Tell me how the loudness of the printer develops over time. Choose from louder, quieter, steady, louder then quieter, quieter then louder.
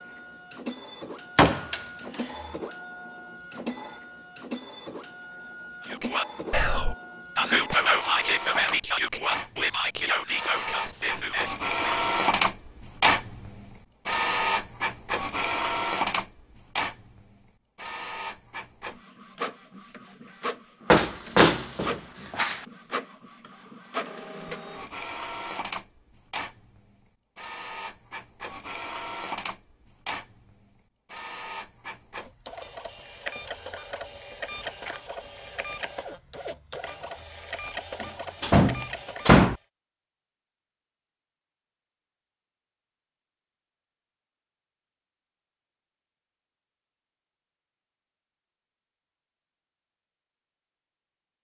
louder then quieter.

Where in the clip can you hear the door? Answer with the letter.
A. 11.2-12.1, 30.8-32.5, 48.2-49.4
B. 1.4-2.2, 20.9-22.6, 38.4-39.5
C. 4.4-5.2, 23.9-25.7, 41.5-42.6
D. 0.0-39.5
B.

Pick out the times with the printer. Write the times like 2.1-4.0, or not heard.
0.0-39.5.